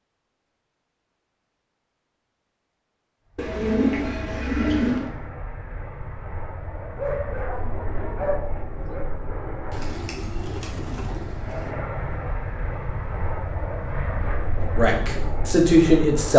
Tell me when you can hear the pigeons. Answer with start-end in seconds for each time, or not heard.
3.4-5.1, 9.7-11.7.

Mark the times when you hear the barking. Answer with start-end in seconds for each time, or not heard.
7.0-9.1.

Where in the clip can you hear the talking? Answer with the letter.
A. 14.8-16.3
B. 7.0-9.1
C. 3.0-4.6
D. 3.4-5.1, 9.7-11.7
A.